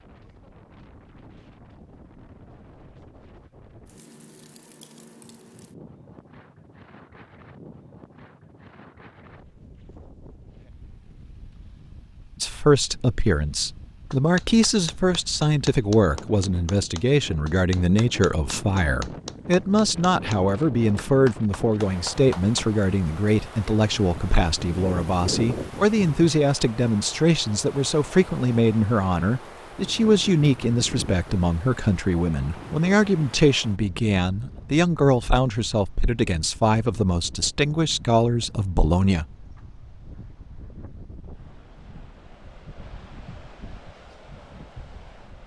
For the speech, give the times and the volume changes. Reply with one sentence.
You can hear the speech from 12.4 to 39.3 s, at a steady volume.